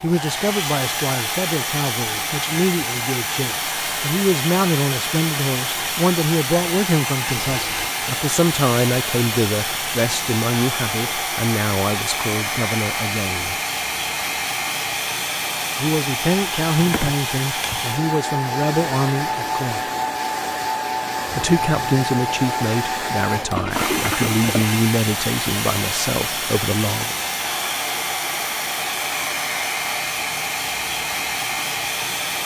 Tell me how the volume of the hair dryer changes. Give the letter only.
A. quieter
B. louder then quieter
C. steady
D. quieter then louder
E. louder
C.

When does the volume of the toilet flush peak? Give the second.
24 s.